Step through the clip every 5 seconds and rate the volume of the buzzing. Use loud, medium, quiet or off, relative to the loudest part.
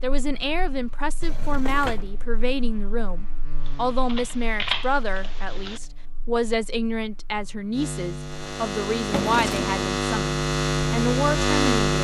quiet, medium, loud.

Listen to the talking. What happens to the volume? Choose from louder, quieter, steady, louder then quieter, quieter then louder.
steady.